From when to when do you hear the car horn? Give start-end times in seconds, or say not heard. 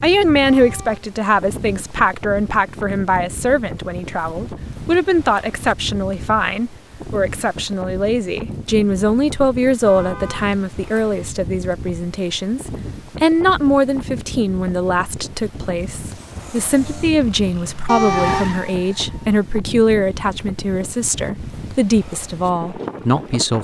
0.5-1.1, 9.8-10.6, 17.9-18.6.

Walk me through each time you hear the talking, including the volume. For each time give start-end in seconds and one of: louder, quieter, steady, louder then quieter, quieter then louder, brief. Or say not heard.
0.0-23.5 steady.